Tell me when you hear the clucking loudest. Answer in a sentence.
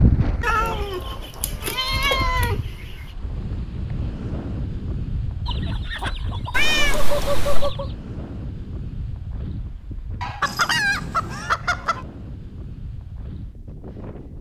The volume of the clucking peaks at 11 seconds.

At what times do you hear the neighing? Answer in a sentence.
You can't hear the neighing here.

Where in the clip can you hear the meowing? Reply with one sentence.
You can hear the meowing from 0.4 to 3.0 s, from 6.5 to 7.8 s and from 10.4 to 11.5 s.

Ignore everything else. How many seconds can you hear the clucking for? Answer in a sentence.
The clucking can be heard for 6 seconds in total.